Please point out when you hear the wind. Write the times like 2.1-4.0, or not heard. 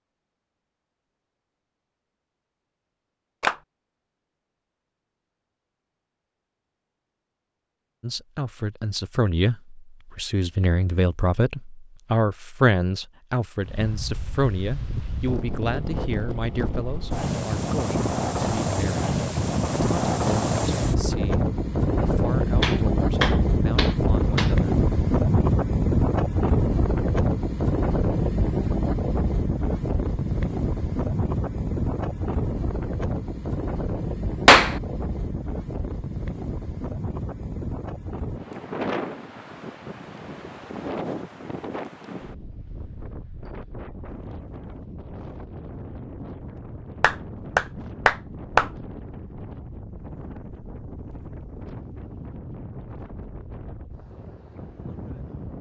13.6-55.5.